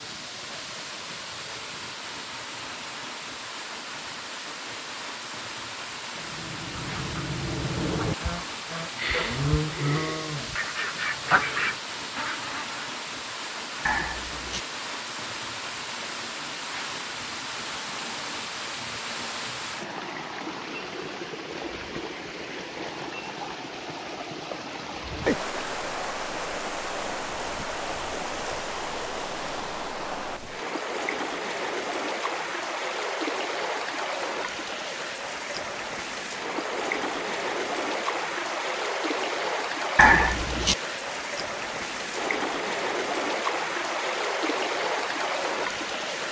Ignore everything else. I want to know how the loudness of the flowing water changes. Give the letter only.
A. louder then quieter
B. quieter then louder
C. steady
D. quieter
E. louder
E.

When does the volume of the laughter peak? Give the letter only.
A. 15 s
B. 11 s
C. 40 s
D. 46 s
C.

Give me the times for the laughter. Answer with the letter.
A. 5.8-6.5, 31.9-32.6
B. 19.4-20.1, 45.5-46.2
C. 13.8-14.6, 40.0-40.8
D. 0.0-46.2
C.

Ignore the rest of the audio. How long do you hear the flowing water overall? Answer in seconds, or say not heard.
46 s.